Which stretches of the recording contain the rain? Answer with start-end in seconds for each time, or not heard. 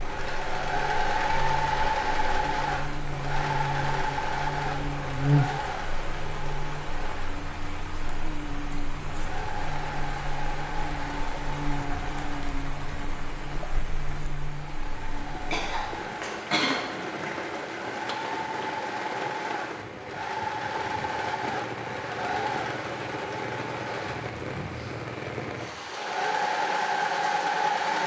0.0-27.9.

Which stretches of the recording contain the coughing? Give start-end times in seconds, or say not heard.
15.2-16.8.